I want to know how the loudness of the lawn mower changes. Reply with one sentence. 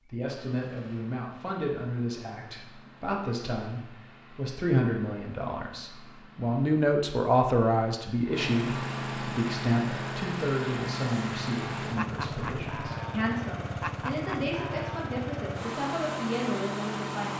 The loudness of the lawn mower goes up.